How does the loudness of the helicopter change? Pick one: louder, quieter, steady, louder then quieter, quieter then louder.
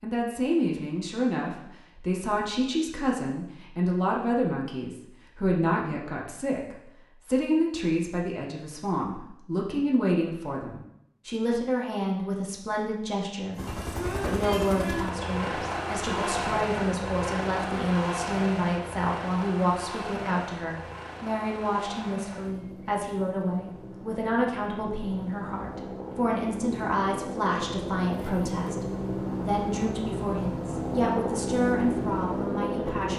quieter then louder.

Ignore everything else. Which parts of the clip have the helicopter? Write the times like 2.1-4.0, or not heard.
13.6-33.1.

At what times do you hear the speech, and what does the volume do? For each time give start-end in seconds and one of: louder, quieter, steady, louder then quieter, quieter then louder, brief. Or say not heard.
0.0-33.1 steady.